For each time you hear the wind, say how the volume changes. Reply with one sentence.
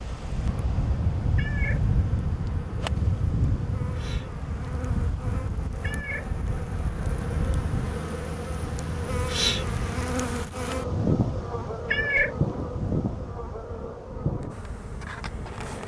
The wind can be heard from 0.0 to 15.8 s, getting quieter.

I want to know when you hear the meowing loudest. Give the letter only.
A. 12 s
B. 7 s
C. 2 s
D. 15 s
A.